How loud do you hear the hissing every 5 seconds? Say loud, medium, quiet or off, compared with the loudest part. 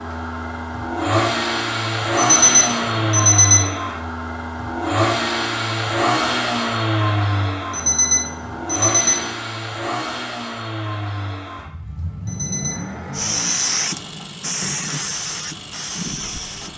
off, off, loud, medium.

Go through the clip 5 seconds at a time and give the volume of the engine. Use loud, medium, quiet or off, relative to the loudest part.
loud, loud, medium, quiet.